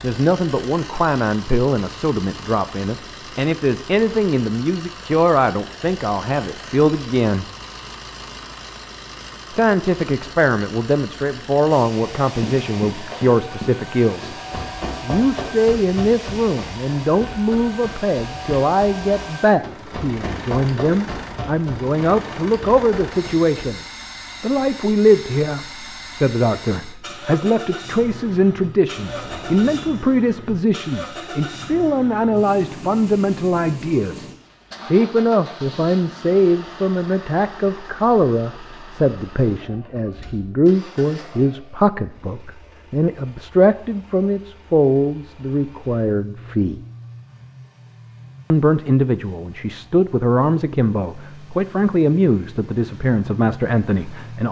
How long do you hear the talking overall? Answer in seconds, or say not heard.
49 s.